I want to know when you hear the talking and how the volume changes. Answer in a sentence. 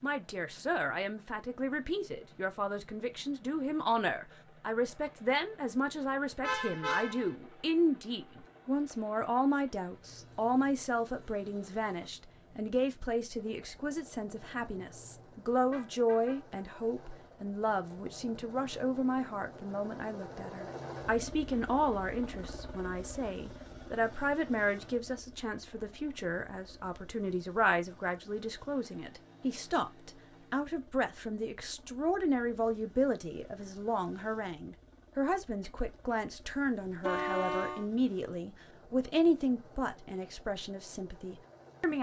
The talking can be heard from 0.0 to 41.9 s, at a steady volume.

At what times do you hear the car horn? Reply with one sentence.
The car horn can be heard from 6.4 to 7.3 s, from 14.6 to 16.6 s and from 37.0 to 37.9 s.